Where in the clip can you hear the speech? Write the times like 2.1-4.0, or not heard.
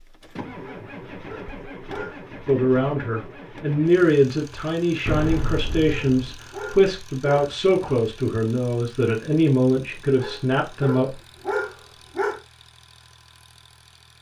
2.5-11.2.